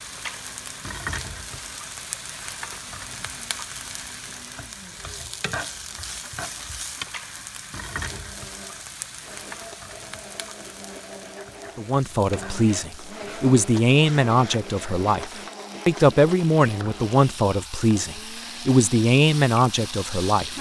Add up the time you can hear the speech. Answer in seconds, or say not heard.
9 s.